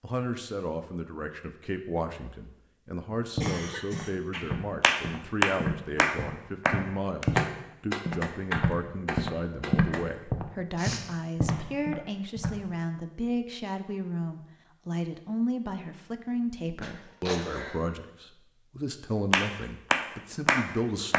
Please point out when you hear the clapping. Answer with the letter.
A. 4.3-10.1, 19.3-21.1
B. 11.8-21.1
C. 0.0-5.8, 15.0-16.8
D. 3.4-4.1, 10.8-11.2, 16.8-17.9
A.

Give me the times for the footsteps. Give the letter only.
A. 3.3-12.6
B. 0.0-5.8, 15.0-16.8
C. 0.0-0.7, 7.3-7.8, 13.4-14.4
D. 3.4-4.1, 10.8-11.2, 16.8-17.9
A.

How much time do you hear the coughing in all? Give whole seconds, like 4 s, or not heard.
2 s.